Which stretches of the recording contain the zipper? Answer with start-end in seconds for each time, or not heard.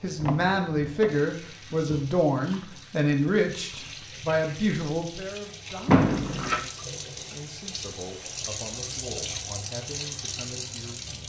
not heard.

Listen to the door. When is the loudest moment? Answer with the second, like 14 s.
6 s.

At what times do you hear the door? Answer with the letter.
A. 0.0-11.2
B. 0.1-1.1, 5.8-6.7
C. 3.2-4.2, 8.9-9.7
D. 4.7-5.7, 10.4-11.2
B.